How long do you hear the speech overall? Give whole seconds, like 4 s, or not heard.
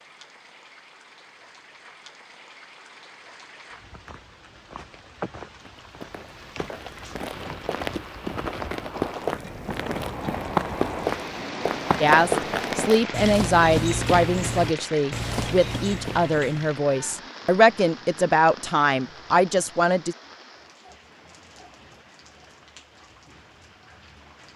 8 s.